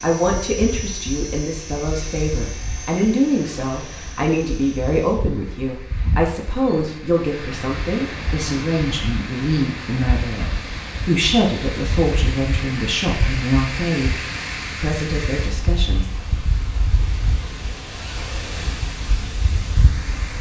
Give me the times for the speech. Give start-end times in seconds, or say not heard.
0.0-16.1.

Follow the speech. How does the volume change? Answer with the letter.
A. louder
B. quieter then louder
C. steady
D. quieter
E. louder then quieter
C.